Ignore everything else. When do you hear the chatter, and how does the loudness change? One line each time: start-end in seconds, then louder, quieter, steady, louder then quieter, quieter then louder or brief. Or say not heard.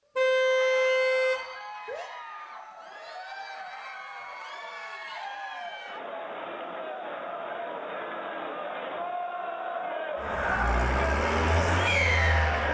0.0-12.6 louder.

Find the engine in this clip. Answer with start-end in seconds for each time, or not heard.
10.2-12.6.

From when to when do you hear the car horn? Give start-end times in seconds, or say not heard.
0.1-2.1.